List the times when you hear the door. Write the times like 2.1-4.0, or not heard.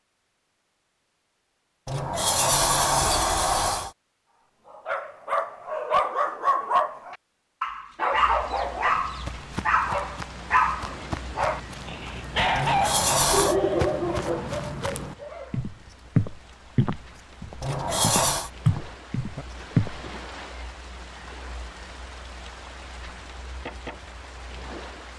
1.9-3.9, 12.6-13.6, 17.6-18.5.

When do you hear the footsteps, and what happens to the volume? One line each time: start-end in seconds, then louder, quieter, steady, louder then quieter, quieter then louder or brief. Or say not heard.
8.8-20.0 louder.